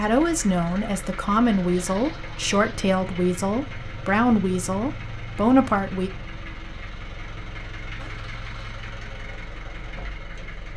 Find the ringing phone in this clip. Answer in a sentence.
You can't hear the ringing phone here.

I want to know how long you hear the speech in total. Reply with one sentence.
You can hear the speech for 6 seconds altogether.